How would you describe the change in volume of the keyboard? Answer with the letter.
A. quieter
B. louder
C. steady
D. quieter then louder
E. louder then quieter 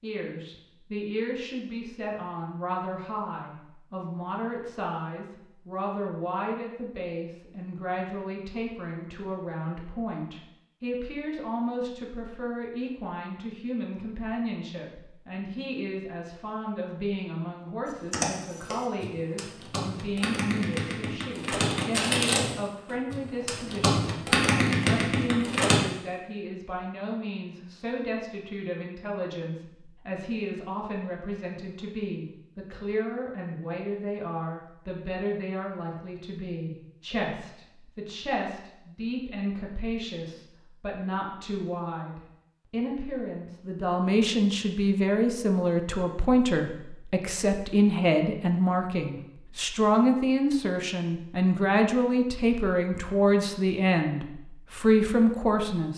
B.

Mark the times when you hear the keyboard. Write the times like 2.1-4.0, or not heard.
17.9-25.8.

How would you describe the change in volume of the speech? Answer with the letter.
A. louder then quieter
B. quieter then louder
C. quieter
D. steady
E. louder
E.